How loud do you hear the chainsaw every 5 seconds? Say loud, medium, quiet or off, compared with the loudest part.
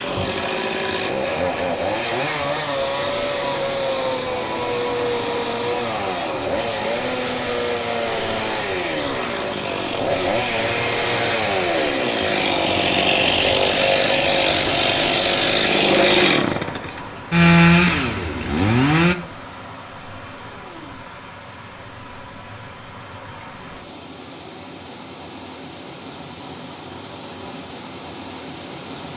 medium, medium, loud, loud, off, off.